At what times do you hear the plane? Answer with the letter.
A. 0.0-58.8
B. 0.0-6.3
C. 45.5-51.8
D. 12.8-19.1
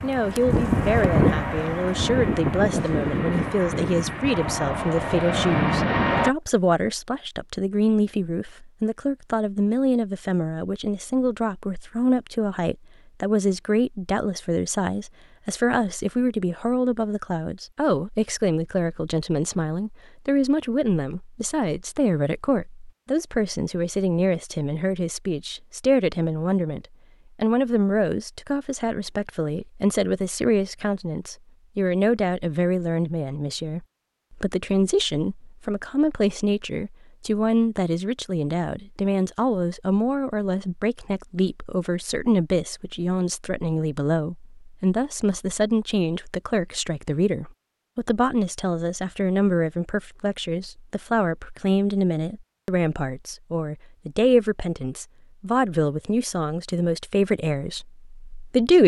B.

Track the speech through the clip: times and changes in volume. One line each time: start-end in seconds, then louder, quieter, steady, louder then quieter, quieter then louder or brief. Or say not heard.
0.0-58.8 steady.